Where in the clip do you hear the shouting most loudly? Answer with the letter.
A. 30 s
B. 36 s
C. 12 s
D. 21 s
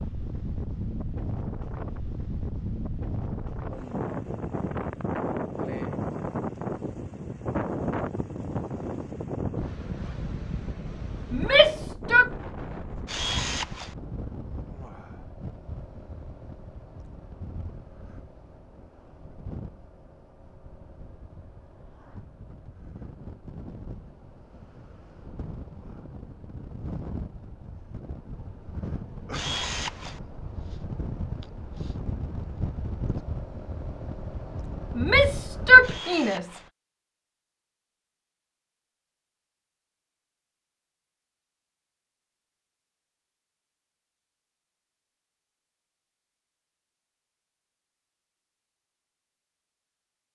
B.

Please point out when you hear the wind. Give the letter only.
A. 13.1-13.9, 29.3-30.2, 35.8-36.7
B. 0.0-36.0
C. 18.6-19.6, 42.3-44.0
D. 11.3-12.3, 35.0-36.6
B.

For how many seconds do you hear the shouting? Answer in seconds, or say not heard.
3 s.